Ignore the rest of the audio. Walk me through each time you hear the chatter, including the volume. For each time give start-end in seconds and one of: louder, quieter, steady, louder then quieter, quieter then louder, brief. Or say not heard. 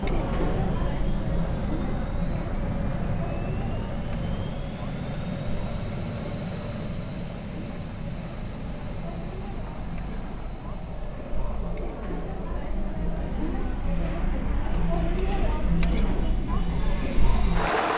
0.0-17.9 quieter then louder.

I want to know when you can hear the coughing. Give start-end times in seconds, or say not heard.
not heard.